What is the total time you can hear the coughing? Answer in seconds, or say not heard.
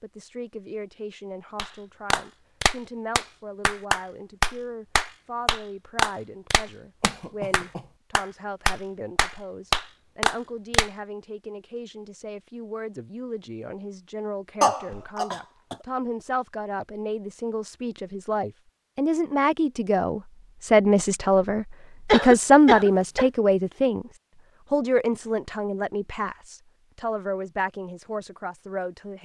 3 s.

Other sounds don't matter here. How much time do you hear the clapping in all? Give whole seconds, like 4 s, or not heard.
9 s.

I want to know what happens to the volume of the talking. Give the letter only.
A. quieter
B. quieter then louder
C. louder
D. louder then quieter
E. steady
D.